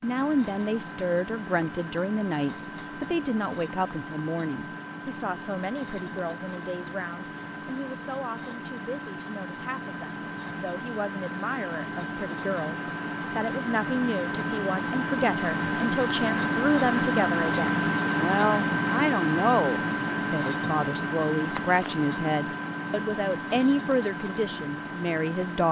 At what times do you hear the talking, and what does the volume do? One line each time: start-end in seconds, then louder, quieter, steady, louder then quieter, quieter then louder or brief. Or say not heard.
0.0-25.6 quieter then louder.